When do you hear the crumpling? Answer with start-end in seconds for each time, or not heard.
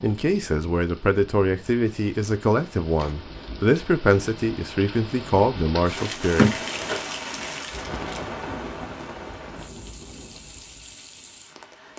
6.0-8.2.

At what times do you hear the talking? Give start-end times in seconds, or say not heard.
0.0-7.0.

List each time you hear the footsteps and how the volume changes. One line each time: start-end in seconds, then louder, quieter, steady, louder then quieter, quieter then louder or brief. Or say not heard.
not heard.